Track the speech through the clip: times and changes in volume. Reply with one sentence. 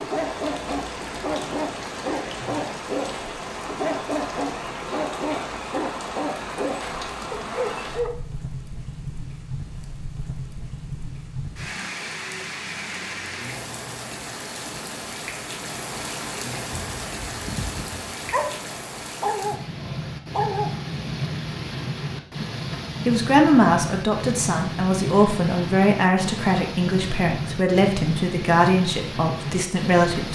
The speech can be heard from 23.1 to 30.3 s, at a steady volume.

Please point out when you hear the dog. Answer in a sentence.
You can hear the dog from 0.0 to 8.3 s and from 16.7 to 20.9 s.